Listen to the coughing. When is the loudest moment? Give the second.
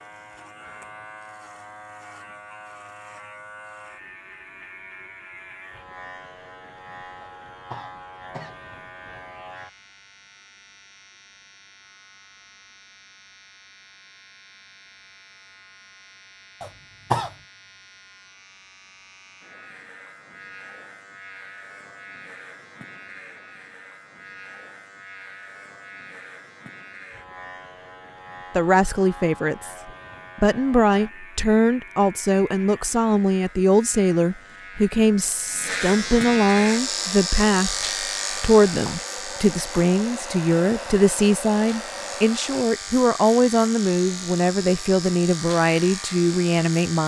17 s.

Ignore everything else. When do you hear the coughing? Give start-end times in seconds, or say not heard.
7.2-8.6, 16.6-17.4, 38.4-39.0.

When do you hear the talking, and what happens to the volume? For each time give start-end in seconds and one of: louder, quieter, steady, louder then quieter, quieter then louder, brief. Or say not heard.
28.6-47.0 steady.